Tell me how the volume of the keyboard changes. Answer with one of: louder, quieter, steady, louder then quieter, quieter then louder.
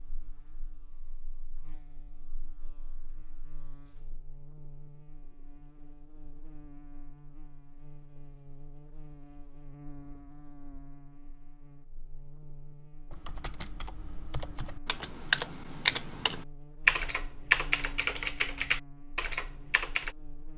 louder then quieter.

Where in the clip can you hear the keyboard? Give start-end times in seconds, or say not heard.
13.1-20.1.